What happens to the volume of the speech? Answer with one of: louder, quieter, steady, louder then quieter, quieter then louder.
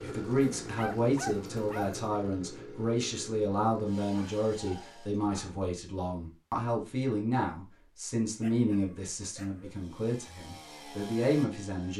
steady.